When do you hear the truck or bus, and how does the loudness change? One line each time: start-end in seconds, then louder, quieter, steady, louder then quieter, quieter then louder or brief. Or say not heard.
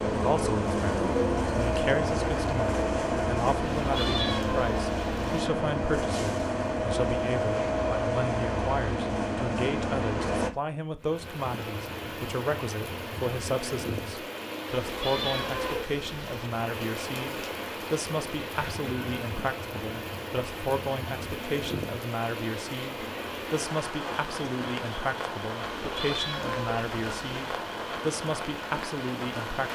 0.0-10.5 steady.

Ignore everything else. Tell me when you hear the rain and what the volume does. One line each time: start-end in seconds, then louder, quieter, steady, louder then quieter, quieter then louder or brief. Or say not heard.
11.0-29.7 steady.